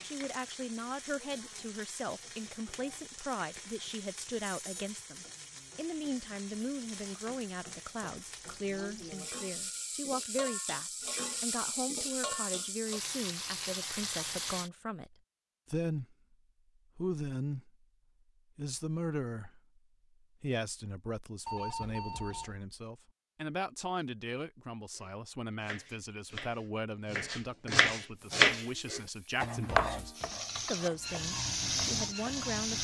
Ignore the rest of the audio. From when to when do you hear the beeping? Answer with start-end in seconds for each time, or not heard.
4.5-4.9, 21.4-22.6.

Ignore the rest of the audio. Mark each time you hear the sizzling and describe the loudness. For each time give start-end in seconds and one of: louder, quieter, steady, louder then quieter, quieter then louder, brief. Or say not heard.
0.0-14.7 louder
28.1-32.7 louder.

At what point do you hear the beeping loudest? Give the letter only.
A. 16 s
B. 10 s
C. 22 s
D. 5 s
C.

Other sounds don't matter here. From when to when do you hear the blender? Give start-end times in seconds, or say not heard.
not heard.